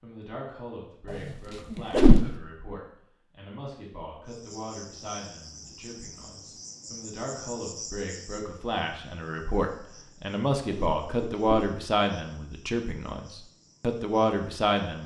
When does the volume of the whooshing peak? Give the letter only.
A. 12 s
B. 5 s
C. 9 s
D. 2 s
D.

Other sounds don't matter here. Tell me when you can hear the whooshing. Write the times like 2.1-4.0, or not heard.
1.1-2.3, 10.7-11.4.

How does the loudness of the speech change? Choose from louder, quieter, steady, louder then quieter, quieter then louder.
louder.